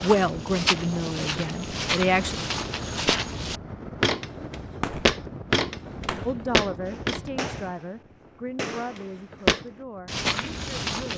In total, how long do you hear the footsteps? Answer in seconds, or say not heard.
9 s.